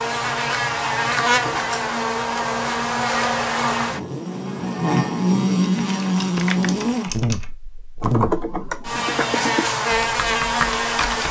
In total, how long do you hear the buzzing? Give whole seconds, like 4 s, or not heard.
11 s.